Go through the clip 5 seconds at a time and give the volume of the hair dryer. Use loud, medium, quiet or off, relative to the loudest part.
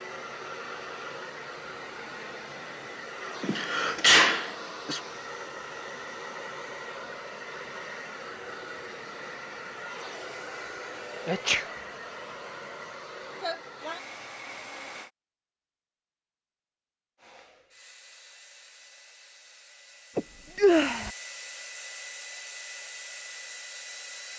loud, loud, loud, quiet, loud.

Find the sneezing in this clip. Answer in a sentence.
The sneezing can be heard from 3.4 to 5.0 s, from 11.2 to 11.7 s and from 20.1 to 21.1 s.